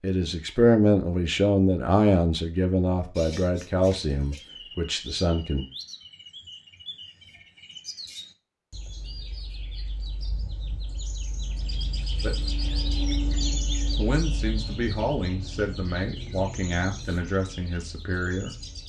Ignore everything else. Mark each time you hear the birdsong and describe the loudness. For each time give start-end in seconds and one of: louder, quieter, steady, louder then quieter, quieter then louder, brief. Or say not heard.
3.1-18.8 louder then quieter.